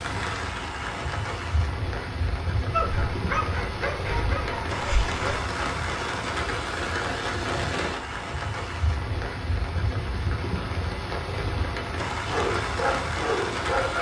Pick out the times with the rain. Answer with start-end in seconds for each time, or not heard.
0.0-13.9.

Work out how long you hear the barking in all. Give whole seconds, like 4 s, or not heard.
4 s.